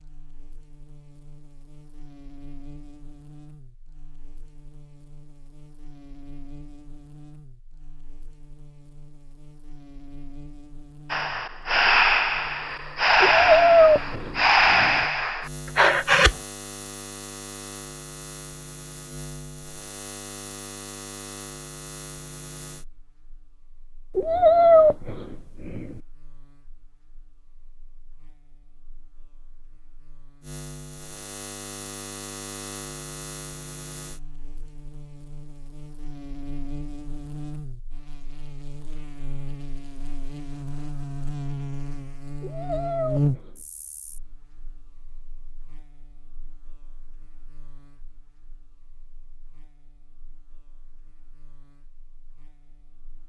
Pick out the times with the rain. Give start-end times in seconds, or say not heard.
not heard.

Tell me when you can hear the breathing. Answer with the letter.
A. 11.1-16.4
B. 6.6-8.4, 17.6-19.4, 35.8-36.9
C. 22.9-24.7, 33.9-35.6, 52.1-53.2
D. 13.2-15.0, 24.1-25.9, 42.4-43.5
A.